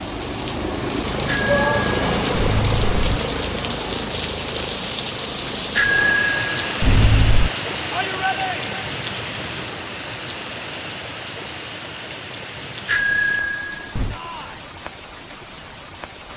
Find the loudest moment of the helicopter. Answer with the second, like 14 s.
2 s.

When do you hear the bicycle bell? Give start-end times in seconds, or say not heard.
1.2-3.2, 5.8-7.5, 12.8-14.2.